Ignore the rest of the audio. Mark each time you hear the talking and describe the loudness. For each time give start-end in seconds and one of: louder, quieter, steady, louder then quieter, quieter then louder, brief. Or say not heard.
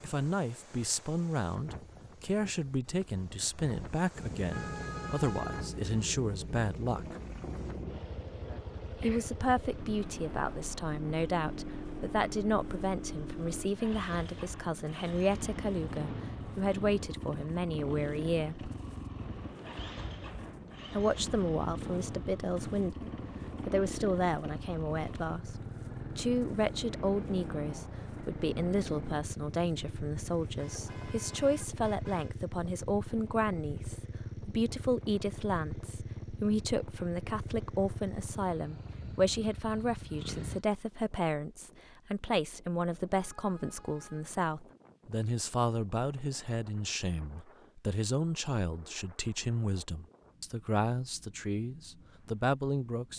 0.0-7.2 steady
8.9-18.7 steady
20.9-53.1 steady.